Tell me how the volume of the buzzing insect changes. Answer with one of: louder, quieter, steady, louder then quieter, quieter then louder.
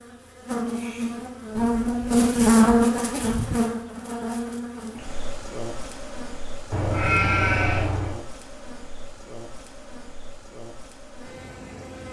quieter.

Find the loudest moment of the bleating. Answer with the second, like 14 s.
7 s.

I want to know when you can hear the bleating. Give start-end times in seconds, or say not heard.
1.6-3.5, 6.7-8.2.